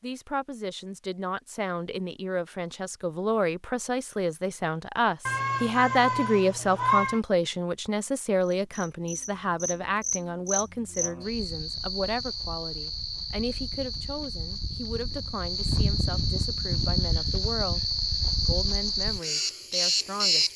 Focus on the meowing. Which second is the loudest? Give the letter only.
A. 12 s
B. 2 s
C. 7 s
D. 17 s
C.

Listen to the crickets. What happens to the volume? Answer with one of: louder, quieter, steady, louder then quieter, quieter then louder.
louder.